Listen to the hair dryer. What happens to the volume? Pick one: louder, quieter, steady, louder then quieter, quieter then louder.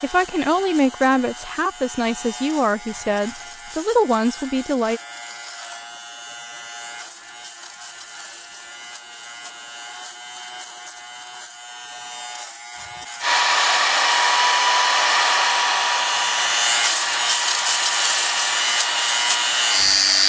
quieter.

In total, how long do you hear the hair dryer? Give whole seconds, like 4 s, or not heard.
7 s.